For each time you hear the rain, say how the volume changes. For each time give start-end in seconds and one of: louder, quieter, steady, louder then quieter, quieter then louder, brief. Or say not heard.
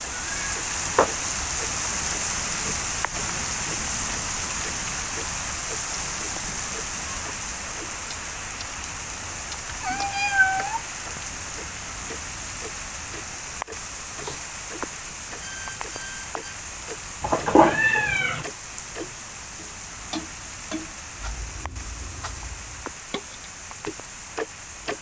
0.0-24.9 quieter.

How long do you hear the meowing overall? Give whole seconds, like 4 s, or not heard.
3 s.